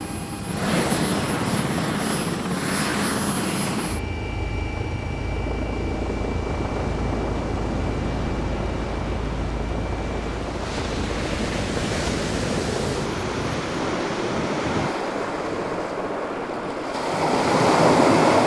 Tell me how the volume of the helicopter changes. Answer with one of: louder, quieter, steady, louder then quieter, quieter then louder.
quieter.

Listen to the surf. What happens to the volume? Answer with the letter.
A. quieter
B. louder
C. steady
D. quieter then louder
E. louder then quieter
B.